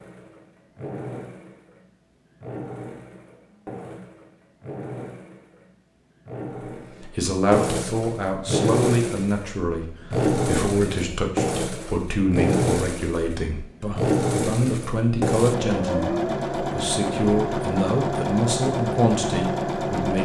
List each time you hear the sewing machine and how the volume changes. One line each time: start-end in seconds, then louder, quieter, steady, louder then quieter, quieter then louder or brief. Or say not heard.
0.0-20.2 louder.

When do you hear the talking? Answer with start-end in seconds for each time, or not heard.
7.0-20.2.